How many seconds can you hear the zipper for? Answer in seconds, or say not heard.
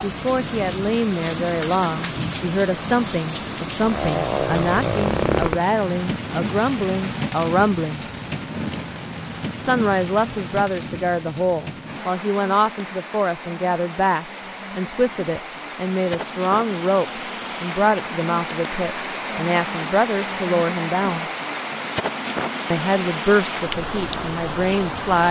2 s.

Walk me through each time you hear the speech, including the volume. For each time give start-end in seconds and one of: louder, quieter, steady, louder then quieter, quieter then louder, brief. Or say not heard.
0.0-8.1 steady
9.6-21.2 steady
22.7-25.2 brief.